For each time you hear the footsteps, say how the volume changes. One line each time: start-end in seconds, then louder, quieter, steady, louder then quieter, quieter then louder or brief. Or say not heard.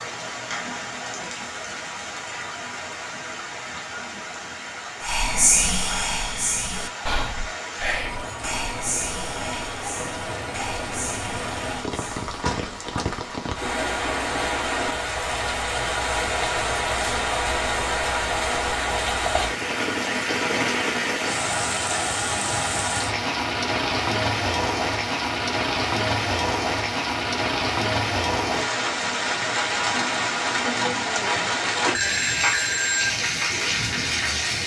not heard.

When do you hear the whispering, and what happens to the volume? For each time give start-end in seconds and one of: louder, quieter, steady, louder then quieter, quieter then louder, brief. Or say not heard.
5.0-12.2 quieter.